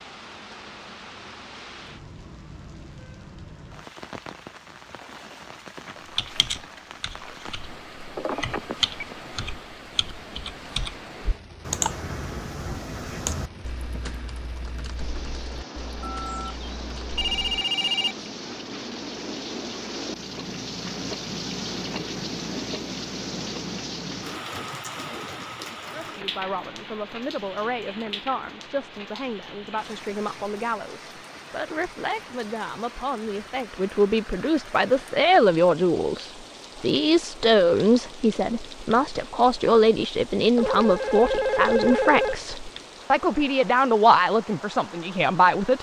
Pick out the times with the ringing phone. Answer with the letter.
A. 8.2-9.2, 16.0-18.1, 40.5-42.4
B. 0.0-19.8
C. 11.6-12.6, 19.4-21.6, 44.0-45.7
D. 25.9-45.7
A.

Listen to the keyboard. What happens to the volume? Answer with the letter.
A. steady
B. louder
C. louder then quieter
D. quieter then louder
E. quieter
C.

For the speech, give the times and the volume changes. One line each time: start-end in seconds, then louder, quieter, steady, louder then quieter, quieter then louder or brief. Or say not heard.
25.9-45.7 louder.